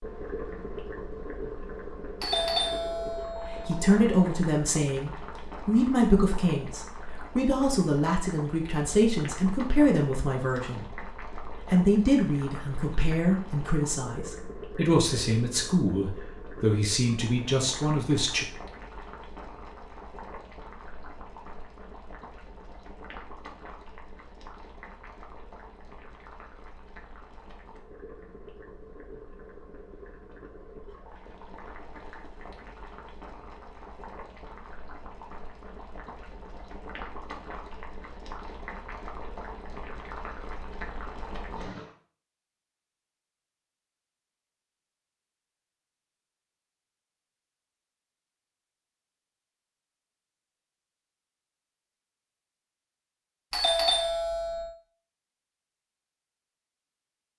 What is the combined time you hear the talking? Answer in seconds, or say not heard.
15 s.